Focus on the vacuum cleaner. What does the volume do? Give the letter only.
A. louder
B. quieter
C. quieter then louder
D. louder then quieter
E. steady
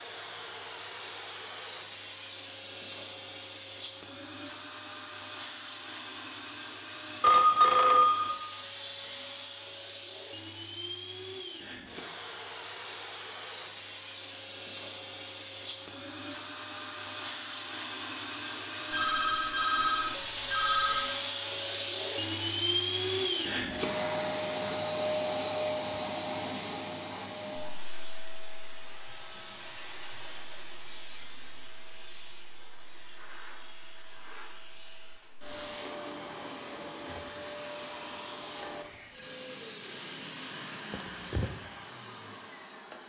D.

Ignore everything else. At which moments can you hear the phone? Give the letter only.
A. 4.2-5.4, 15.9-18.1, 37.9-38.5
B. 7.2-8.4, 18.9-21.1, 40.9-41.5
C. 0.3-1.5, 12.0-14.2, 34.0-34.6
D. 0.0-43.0
B.